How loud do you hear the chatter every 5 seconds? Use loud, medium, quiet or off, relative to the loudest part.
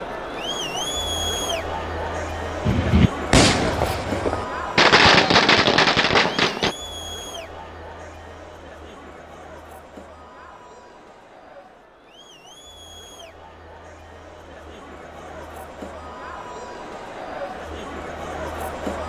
loud, medium, quiet, medium.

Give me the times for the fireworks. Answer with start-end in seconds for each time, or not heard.
2.6-6.8.